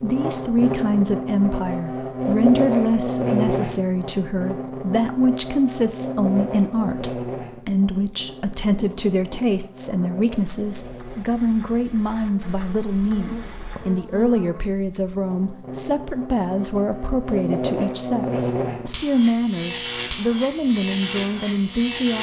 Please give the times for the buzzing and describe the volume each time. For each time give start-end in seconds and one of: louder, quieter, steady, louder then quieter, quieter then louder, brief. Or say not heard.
0.0-22.1 quieter then louder.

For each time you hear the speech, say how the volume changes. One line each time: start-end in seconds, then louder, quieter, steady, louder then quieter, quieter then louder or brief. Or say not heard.
0.0-22.1 steady.